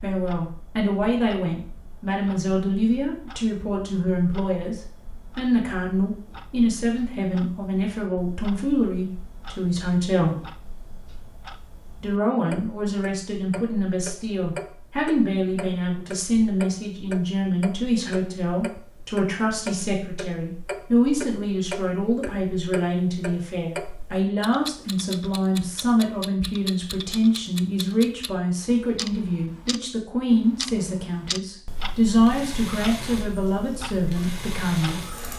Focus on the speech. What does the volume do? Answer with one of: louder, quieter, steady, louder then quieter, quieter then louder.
steady.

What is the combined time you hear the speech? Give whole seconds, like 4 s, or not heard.
33 s.